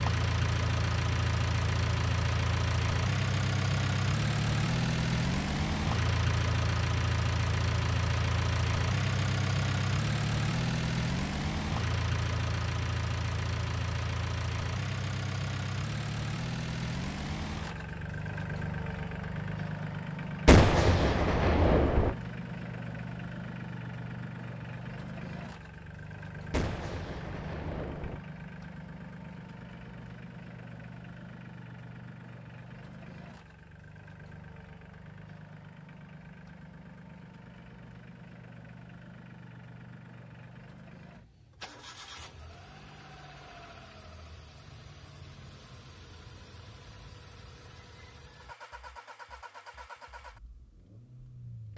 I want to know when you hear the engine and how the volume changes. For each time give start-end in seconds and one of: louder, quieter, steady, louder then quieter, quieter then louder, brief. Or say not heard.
0.0-51.7 quieter.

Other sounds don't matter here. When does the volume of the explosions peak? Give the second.
21 s.